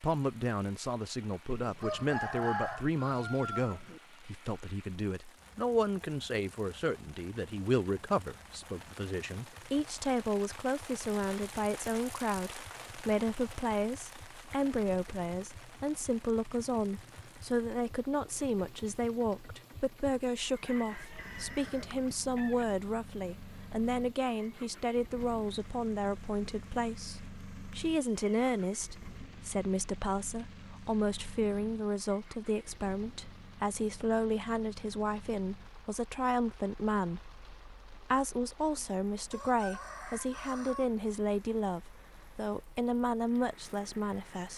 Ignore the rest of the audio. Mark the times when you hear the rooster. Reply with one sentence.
The rooster can be heard from 1.6 to 4.0 s, from 20.6 to 22.6 s and from 39.3 to 40.9 s.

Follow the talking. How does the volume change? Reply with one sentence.
The volume of the talking stays about the same.